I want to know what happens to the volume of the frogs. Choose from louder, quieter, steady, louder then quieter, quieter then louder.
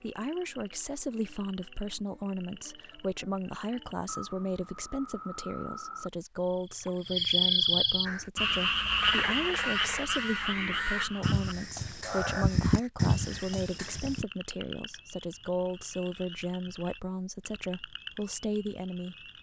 louder then quieter.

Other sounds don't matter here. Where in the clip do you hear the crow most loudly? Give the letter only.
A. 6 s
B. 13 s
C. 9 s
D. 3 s
B.